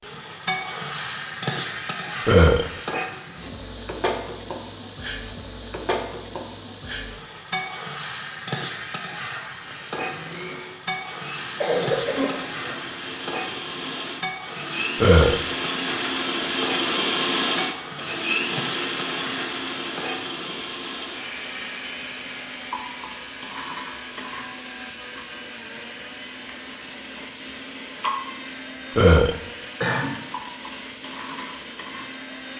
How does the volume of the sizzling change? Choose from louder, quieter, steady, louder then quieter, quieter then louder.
quieter.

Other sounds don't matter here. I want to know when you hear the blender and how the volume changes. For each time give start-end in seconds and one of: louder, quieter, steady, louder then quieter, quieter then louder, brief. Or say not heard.
9.9-32.5 louder then quieter.